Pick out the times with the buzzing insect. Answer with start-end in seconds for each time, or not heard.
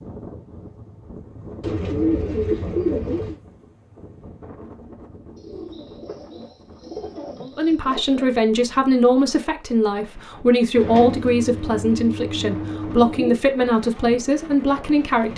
not heard.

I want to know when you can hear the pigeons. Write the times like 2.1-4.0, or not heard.
1.6-3.4, 5.3-8.3, 10.8-13.4.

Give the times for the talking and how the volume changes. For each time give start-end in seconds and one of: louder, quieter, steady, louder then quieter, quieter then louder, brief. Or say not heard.
7.4-15.3 steady.